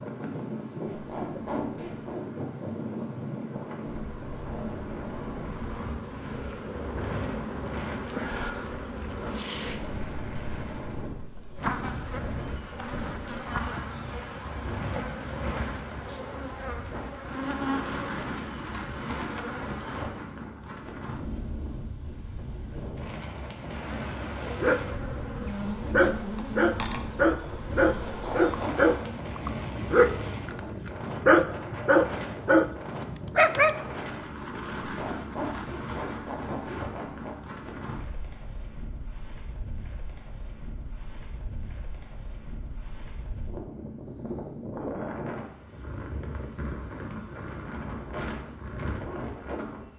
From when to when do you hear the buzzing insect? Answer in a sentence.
The buzzing insect can be heard from 0.0 to 20.4 s and from 23.5 to 29.3 s.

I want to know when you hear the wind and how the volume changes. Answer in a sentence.
The wind can be heard from 0.0 to 49.9 s, at a steady volume.